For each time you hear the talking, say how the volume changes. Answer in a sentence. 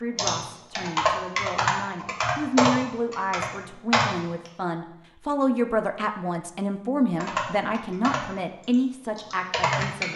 You can hear the talking from 0.0 to 10.1 s, getting louder.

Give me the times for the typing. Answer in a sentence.
You can hear the typing from 0.1 to 4.5 s and from 7.2 to 10.1 s.